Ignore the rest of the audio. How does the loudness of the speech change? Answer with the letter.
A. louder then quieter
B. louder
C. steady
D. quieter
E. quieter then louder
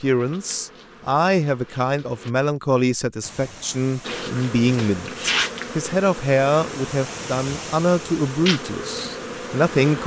C.